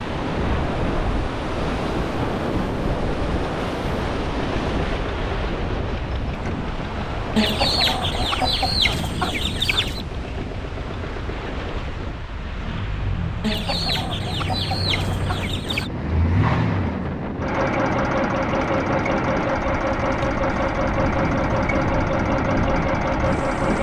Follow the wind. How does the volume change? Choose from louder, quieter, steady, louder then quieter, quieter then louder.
quieter then louder.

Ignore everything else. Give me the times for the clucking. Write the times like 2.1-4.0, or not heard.
7.3-10.1, 13.4-15.9.